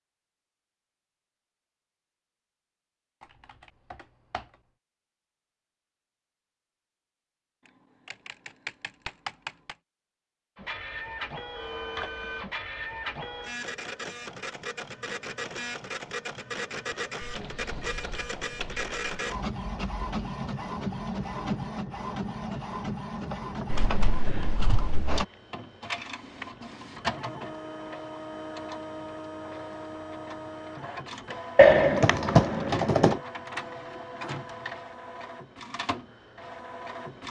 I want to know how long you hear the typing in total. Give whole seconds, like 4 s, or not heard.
8 s.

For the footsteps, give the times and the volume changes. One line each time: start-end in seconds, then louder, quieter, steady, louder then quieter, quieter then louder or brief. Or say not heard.
not heard.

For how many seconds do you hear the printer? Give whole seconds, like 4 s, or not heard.
27 s.